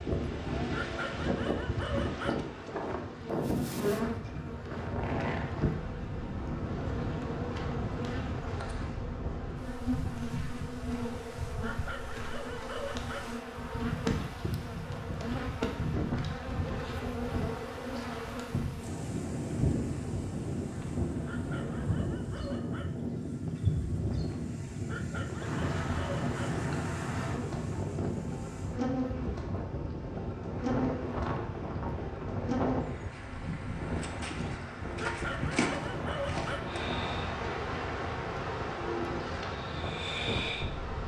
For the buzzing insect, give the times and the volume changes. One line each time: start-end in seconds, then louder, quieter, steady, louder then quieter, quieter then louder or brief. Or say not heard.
0.0-41.0 steady.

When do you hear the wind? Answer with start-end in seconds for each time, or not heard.
0.0-41.0.